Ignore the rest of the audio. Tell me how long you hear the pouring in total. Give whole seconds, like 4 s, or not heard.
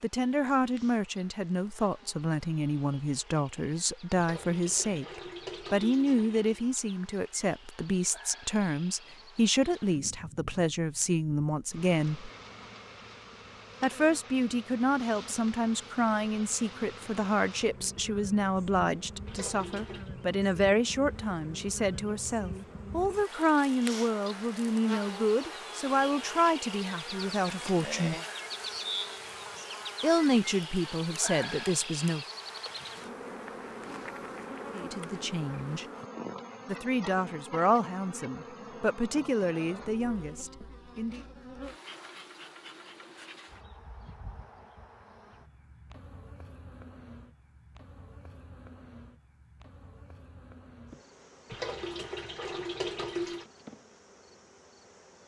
5 s.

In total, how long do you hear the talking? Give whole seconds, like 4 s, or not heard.
35 s.